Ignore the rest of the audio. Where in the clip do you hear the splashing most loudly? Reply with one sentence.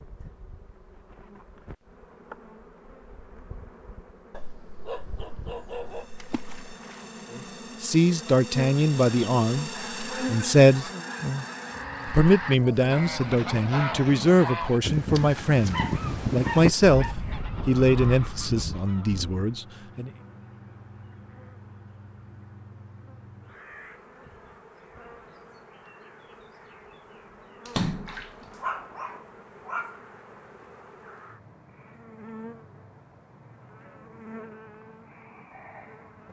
The loudest moment of the splashing is at 28 seconds.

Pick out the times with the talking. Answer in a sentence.
You can hear the talking from 7.8 to 10.9 s and from 12.1 to 20.1 s.